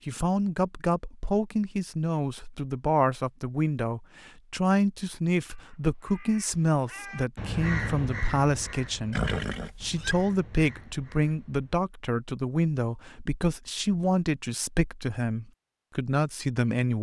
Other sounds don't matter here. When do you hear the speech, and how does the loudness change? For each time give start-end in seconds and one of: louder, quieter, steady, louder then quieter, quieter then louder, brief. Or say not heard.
0.1-16.9 steady.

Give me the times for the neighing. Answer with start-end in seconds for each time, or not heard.
9.1-10.2.